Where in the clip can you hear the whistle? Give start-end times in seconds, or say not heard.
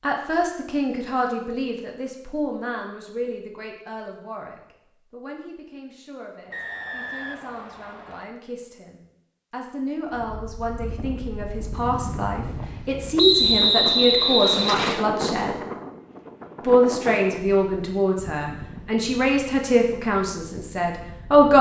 6.5-8.2, 13.2-15.1.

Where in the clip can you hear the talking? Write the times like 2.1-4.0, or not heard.
0.0-15.6, 16.6-21.5.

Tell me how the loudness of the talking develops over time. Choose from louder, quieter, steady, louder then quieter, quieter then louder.
quieter then louder.